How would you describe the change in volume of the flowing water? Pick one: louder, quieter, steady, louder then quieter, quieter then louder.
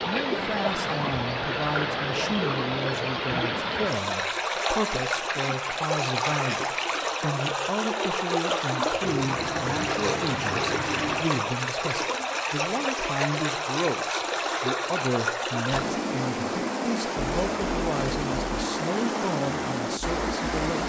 steady.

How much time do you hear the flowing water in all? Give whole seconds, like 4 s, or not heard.
21 s.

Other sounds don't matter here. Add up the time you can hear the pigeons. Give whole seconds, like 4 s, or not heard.
2 s.